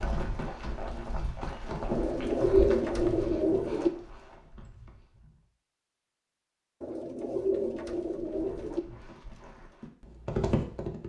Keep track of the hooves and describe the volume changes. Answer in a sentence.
The loudness of the hooves goes down, then up.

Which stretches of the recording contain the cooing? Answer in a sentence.
The cooing can be heard from 1.9 to 3.9 s and from 6.8 to 8.8 s.